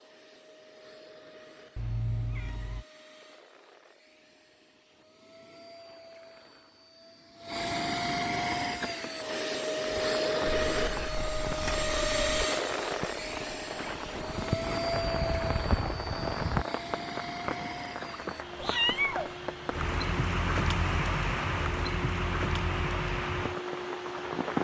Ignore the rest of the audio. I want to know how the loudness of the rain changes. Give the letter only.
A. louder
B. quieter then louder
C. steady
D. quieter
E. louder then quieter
A.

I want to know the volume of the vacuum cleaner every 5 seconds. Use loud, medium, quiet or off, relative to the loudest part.
quiet, loud, loud, medium, medium.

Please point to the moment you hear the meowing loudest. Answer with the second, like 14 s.
19 s.